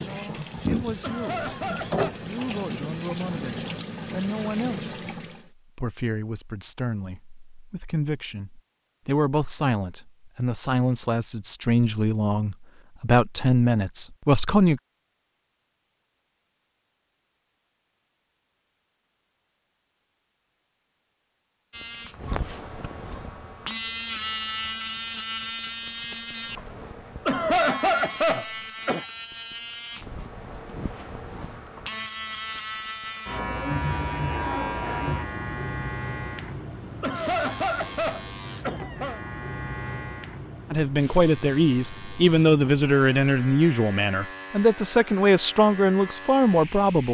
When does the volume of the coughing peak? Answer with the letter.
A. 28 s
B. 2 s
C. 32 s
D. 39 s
A.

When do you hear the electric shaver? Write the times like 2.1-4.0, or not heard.
21.7-47.0.